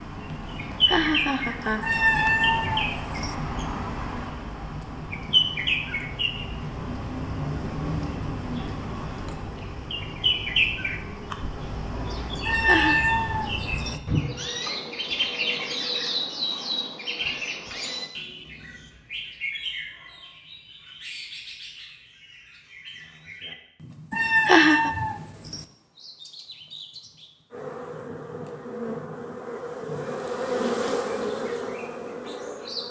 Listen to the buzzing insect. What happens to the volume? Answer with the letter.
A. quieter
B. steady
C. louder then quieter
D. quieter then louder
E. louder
C.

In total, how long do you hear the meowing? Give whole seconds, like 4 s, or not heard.
5 s.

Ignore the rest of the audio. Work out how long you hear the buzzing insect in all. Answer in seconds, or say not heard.
5 s.